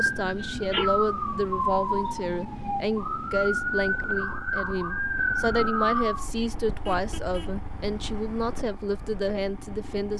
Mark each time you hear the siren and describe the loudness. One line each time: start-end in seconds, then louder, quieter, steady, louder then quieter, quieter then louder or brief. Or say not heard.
0.0-6.3 steady.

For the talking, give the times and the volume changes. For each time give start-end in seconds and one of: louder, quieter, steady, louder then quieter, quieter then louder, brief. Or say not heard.
0.0-10.1 steady.